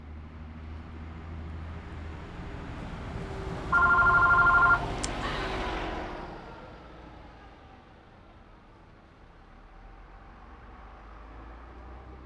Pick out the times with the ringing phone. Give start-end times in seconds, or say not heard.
3.7-5.5.